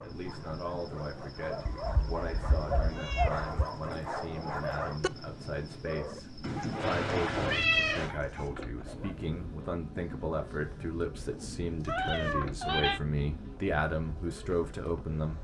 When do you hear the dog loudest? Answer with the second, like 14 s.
3 s.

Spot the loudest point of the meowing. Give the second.
8 s.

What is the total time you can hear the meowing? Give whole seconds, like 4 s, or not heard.
5 s.